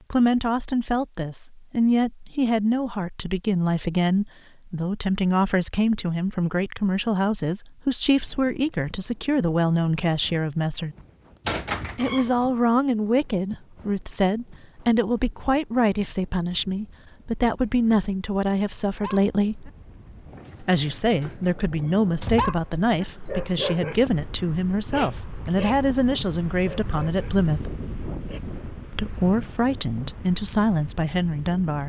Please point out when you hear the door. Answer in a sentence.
You can hear the door from 11.4 to 12.3 s and from 21.2 to 22.6 s.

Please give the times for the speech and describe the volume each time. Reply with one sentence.
You can hear the speech from 0.1 to 10.9 s, at a steady volume; from 11.9 to 19.7 s, at a steady volume; from 20.6 to 27.8 s, at a steady volume; and briefly from 28.9 to 31.8 s.